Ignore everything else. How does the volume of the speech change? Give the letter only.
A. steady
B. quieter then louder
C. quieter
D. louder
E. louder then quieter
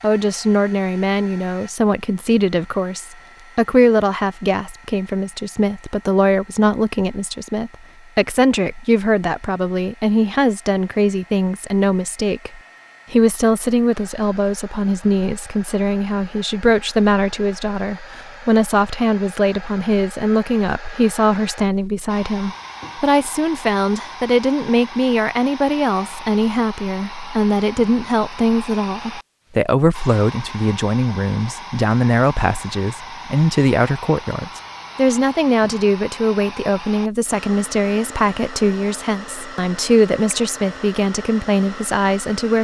A.